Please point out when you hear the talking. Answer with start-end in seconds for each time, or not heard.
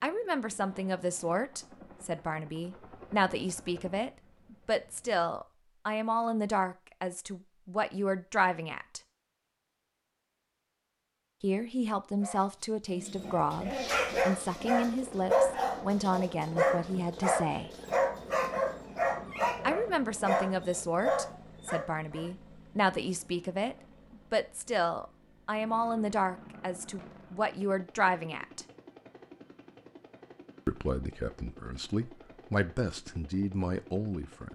0.0-9.0, 11.4-17.7, 19.6-28.6, 30.6-34.4.